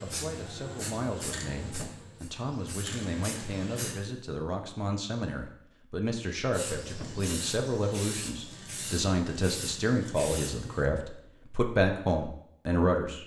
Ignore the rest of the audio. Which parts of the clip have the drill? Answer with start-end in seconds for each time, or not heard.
not heard.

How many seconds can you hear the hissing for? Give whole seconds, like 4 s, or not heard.
8 s.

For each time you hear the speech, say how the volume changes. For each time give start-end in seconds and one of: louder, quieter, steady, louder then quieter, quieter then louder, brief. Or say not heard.
0.0-13.2 louder.